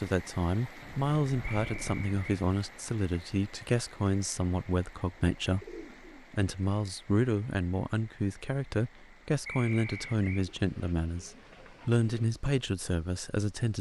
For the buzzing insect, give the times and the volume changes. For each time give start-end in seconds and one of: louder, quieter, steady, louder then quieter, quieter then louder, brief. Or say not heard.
not heard.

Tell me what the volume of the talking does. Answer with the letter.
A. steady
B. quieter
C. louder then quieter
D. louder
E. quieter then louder
A.